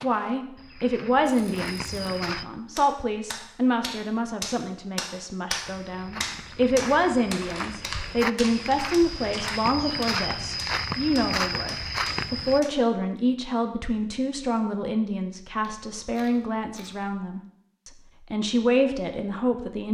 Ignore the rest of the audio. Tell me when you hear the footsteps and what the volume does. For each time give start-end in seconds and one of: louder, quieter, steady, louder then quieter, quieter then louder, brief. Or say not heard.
0.0-2.5 brief
5.7-12.6 louder.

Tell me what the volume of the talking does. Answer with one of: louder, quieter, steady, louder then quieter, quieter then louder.
steady.